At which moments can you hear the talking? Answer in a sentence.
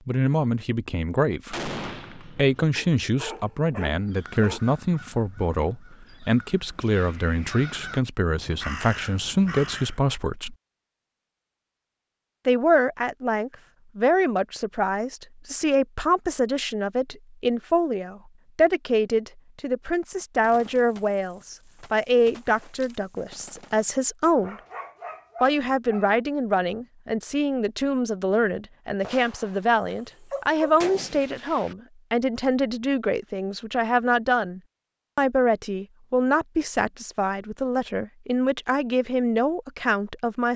The talking can be heard from 0.1 to 10.6 s, from 12.4 to 24.6 s and from 25.4 to 40.5 s.